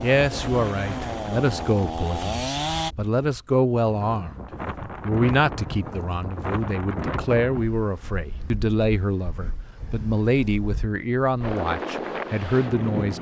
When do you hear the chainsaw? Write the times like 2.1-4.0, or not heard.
0.0-3.0.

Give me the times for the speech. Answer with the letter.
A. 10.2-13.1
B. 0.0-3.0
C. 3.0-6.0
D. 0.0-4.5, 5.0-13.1
D.